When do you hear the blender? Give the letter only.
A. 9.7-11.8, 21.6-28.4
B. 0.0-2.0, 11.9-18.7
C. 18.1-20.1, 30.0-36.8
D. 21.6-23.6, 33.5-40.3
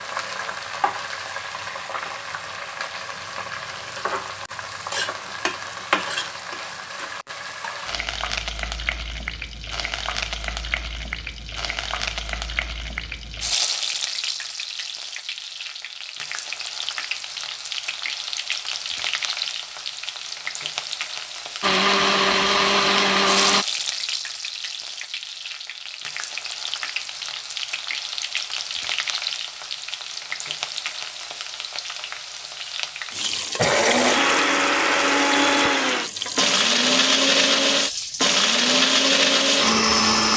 D.